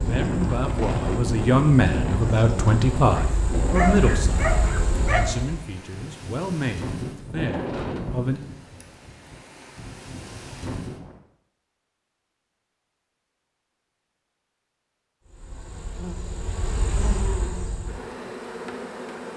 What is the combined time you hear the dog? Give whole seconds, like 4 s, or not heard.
2 s.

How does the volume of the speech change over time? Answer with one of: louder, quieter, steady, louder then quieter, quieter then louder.
quieter.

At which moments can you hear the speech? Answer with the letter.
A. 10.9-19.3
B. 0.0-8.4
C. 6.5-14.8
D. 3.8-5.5
B.